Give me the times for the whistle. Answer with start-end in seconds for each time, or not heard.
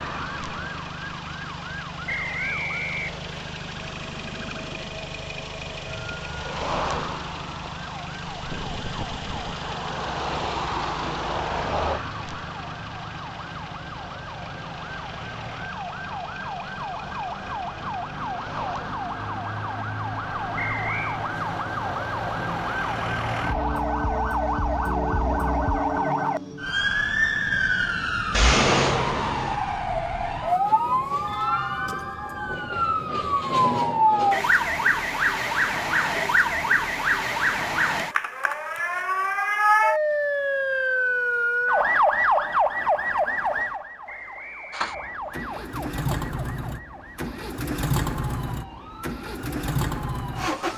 2.0-3.5, 20.6-21.2, 44.0-45.5.